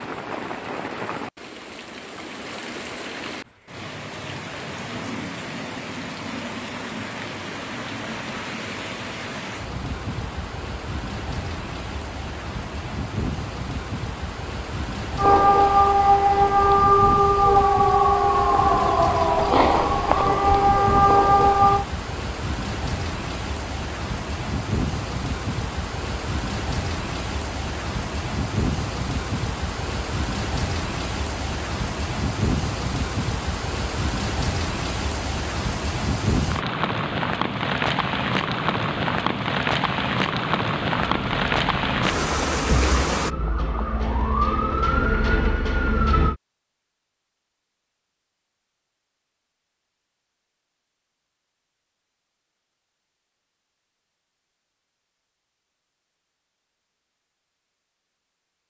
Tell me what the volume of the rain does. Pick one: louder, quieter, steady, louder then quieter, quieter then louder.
louder.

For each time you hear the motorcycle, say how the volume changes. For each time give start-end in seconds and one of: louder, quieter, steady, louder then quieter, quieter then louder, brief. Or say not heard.
not heard.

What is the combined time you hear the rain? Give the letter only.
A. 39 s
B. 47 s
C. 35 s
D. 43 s
D.